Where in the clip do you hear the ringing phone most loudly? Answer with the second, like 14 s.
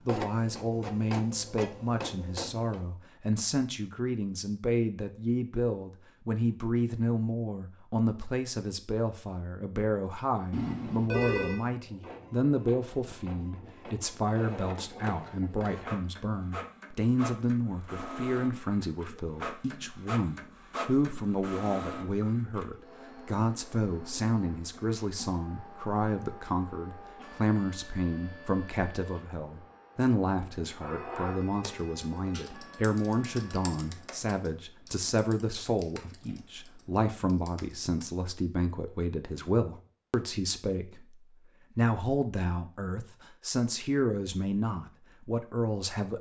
11 s.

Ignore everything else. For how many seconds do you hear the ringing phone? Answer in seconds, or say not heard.
3 s.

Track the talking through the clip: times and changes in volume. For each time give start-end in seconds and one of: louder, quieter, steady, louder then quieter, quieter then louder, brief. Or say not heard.
0.1-46.1 steady.